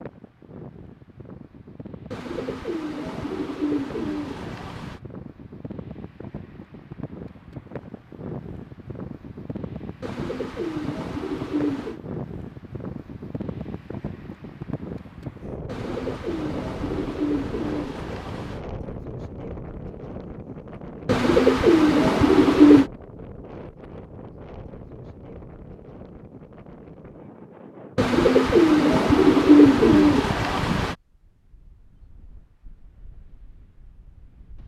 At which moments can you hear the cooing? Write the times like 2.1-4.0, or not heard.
2.1-5.0, 10.0-12.0, 15.7-18.6, 21.1-22.9, 27.9-30.9.